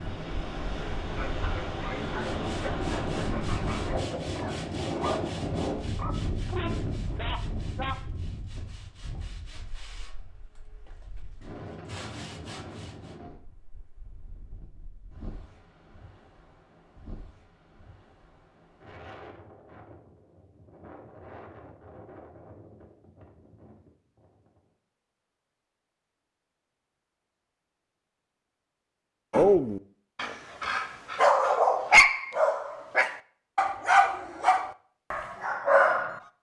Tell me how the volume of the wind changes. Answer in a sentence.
The volume of the wind goes down.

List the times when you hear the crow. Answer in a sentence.
You can't hear the crow here.